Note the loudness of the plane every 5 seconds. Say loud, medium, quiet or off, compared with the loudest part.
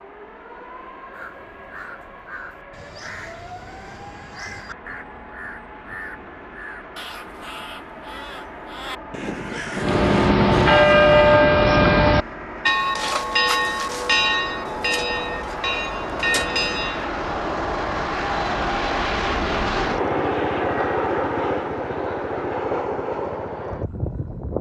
quiet, quiet, medium, loud, loud.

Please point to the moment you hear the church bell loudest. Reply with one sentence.
The volume of the church bell peaks at 11 seconds.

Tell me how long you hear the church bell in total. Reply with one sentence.
The church bell can be heard for 7 seconds in total.